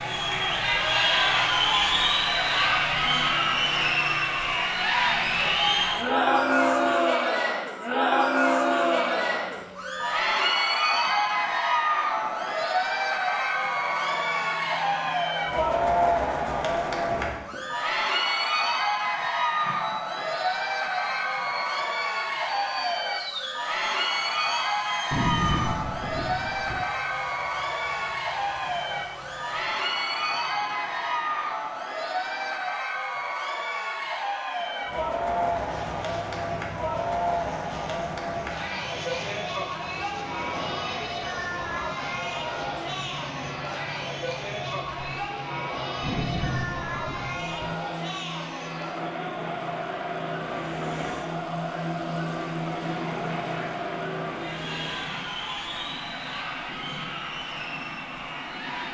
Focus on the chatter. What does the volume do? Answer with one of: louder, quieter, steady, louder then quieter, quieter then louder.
quieter.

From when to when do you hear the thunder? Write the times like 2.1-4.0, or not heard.
25.1-26.9, 46.0-47.8.